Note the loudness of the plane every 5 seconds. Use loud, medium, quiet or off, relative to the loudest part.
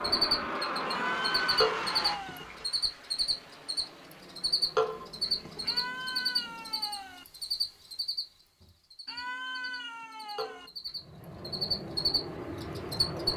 loud, quiet, loud.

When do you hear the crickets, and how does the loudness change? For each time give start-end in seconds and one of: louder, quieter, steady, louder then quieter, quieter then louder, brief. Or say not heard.
0.0-13.3 quieter then louder.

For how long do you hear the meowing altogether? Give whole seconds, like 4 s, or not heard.
5 s.